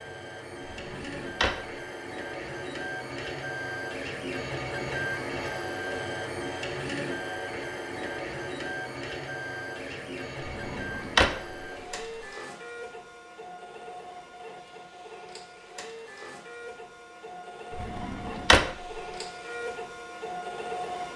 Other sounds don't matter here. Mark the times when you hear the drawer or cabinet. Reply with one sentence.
The drawer or cabinet can be heard from 0.7 to 1.6 s, from 10.4 to 11.7 s and from 17.7 to 18.7 s.